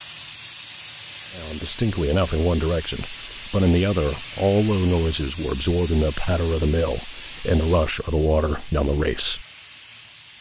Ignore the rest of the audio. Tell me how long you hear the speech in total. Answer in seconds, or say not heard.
8 s.